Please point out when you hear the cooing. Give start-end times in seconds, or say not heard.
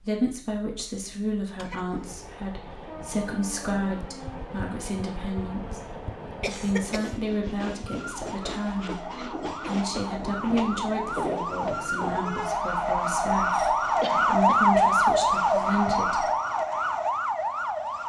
not heard.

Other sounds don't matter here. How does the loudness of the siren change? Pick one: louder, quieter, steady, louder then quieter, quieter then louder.
louder.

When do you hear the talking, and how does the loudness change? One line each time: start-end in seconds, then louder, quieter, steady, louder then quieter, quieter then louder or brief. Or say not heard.
0.0-16.2 steady.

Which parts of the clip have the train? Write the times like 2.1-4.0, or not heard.
1.8-12.4.